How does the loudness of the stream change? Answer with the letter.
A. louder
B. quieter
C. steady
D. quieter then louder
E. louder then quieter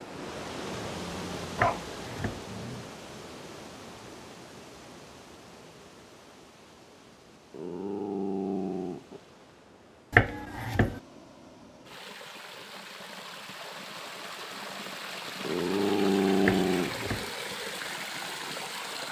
D.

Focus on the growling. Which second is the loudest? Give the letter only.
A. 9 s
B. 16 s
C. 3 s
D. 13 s
B.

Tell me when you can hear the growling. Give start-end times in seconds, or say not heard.
0.7-2.9, 7.5-9.2, 15.4-17.1.